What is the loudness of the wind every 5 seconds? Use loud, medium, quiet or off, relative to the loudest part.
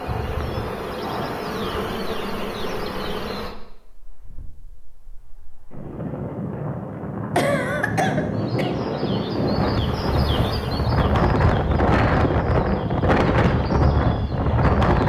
quiet, medium, loud.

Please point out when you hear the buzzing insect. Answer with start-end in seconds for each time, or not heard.
0.0-3.5, 8.3-15.0.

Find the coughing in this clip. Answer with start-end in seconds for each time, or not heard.
7.3-8.8.